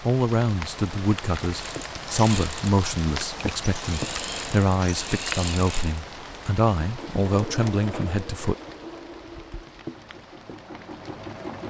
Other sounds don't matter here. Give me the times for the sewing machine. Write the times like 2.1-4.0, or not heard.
1.4-11.6.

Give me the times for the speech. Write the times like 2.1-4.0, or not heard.
0.0-8.6.